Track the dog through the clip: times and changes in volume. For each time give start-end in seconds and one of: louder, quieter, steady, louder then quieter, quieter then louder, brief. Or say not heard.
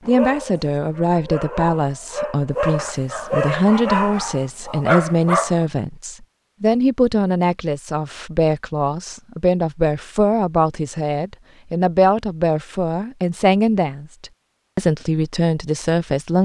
0.0-5.7 louder.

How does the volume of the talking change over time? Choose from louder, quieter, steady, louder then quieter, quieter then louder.
steady.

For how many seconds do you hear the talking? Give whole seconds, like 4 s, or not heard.
16 s.